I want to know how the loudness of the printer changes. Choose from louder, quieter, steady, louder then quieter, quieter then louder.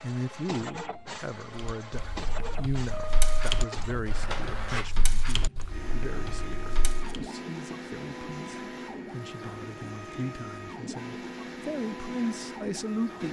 steady.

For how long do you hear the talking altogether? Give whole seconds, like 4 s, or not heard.
13 s.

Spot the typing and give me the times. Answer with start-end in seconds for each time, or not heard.
1.6-7.2.